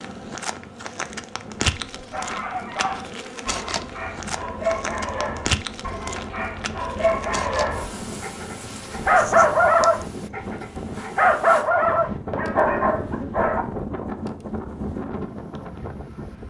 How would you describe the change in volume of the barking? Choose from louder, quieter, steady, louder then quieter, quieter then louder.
louder.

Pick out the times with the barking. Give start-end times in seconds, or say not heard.
2.1-13.7.